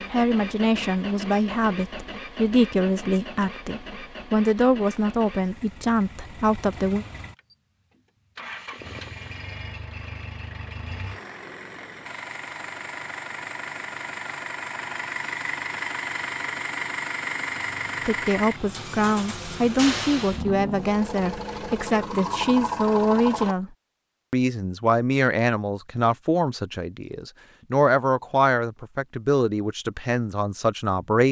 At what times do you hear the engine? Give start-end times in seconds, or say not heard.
0.0-23.6.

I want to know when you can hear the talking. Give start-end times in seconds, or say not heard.
0.1-7.0, 18.1-23.7, 24.3-31.2.